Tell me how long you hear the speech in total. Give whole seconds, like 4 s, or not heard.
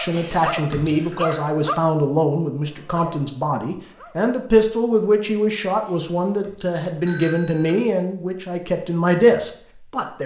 10 s.